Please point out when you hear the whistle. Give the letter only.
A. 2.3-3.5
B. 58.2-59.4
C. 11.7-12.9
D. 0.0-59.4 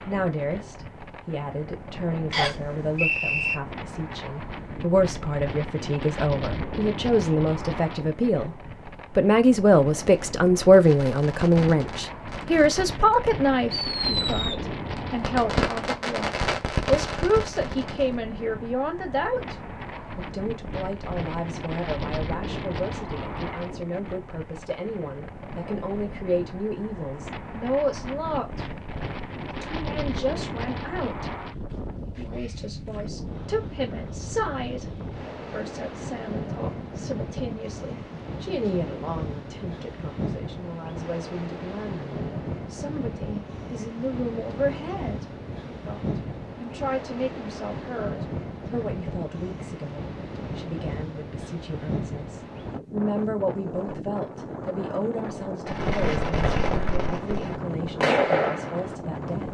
A.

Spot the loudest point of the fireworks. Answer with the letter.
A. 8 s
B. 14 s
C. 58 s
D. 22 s
C.